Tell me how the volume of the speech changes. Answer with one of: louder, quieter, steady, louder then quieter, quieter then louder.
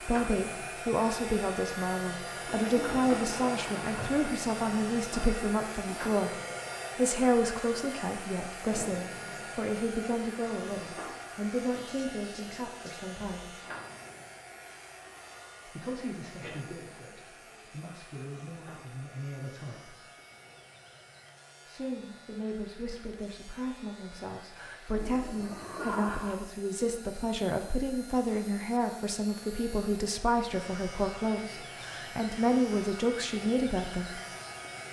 quieter then louder.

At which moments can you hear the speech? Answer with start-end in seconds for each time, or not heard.
0.1-13.6, 15.7-19.9, 21.6-34.2.